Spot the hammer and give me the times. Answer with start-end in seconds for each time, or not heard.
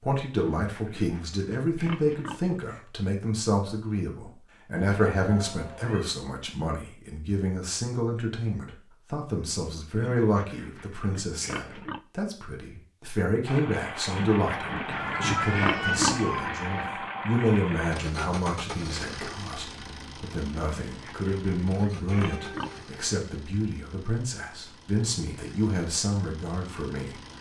not heard.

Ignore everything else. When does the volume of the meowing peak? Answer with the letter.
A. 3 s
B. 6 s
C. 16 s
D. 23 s
C.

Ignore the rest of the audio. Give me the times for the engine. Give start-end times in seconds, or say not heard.
13.4-27.3.